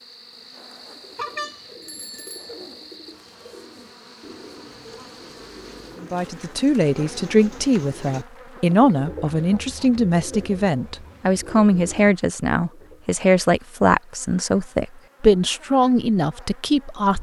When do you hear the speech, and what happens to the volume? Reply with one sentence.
The speech can be heard from 6.0 to 17.1 s, at a steady volume.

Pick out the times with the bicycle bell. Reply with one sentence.
The bicycle bell can be heard from 1.1 to 2.6 s.